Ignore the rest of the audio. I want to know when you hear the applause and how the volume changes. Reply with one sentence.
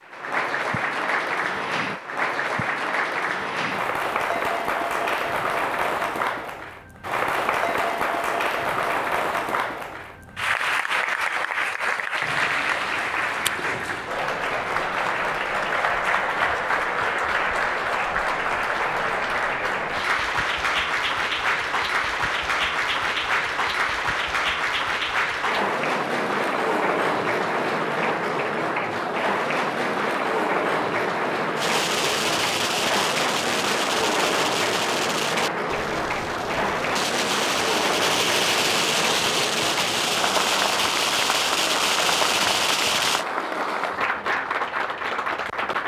You can hear the applause from 0.0 to 45.8 s, at a steady volume.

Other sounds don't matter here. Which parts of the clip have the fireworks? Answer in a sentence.
You can hear the fireworks from 31.6 to 43.2 s.